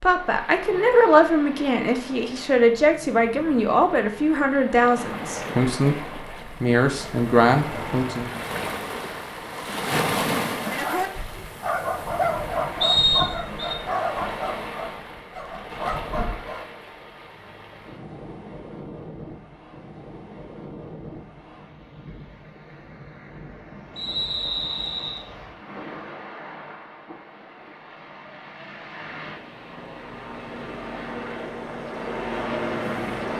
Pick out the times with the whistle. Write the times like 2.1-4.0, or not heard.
12.8-13.8, 23.9-25.2.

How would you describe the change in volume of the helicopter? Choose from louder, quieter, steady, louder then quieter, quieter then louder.
louder.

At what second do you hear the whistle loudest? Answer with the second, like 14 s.
13 s.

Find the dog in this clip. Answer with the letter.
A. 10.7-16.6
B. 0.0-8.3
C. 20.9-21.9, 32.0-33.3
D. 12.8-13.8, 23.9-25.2
A.